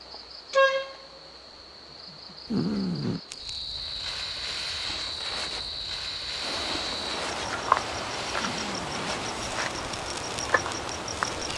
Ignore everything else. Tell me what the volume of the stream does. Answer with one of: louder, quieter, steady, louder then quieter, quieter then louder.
louder.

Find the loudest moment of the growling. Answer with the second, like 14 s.
3 s.